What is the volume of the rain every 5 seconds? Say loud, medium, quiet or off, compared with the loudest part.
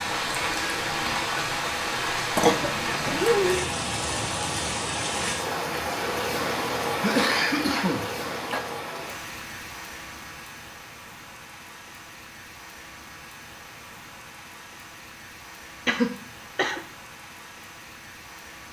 loud, loud, quiet, quiet.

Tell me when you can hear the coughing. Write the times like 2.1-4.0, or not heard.
2.4-3.6, 7.0-8.6, 15.8-16.8.